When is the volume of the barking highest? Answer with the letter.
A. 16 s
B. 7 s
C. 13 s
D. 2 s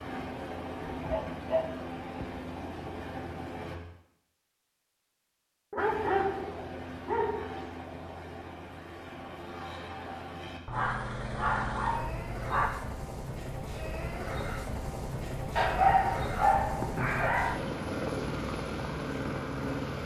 A.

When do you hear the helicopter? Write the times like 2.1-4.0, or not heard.
0.0-3.8, 5.8-20.0.